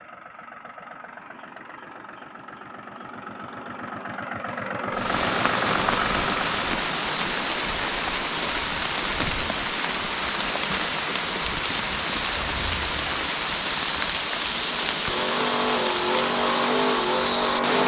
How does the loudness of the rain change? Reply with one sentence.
The volume of the rain stays about the same.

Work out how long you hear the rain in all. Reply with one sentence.
The rain can be heard for 13 seconds in total.